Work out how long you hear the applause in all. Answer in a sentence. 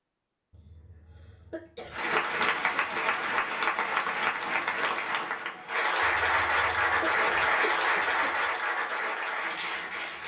The applause can be heard for 8 seconds in total.